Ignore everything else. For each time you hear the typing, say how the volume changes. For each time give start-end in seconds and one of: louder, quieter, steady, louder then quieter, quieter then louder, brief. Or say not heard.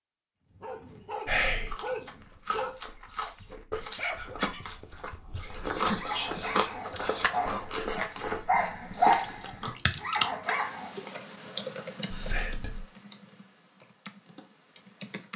9.1-15.3 quieter.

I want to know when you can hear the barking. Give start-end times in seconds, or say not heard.
0.6-11.0.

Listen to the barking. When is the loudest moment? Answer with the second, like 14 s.
9 s.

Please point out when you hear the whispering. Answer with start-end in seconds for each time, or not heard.
1.2-1.8, 5.3-7.7, 12.1-12.8.